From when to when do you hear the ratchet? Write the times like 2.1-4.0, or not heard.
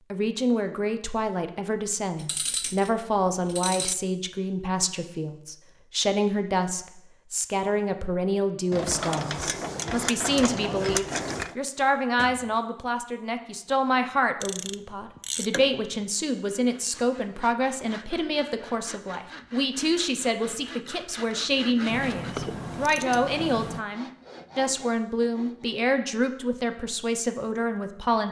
2.1-4.0, 8.7-11.6, 14.4-15.8, 21.9-23.9.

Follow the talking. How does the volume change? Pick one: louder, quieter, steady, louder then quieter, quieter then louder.
steady.